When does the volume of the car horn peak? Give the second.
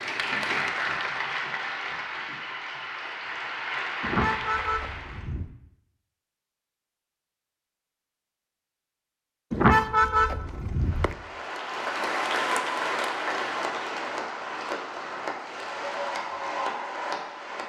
10 s.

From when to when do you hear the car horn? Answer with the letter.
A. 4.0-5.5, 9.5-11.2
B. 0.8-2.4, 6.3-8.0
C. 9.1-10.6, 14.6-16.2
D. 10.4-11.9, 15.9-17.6
A.